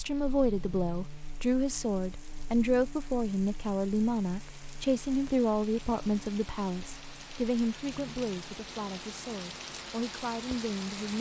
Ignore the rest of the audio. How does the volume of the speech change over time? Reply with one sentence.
The volume of the speech goes down.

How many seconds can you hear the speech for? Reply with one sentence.
The speech can be heard for 11 seconds in total.